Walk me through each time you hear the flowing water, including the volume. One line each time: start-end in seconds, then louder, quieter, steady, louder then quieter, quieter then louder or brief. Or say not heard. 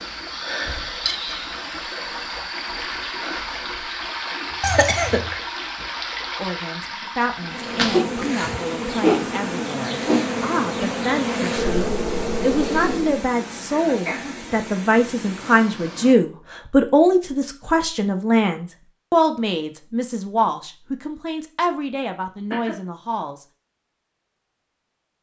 0.0-16.1 quieter.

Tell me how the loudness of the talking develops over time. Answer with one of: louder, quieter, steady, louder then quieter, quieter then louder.
louder then quieter.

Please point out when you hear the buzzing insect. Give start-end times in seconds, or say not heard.
7.5-13.2.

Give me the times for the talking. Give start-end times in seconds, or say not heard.
6.3-23.4.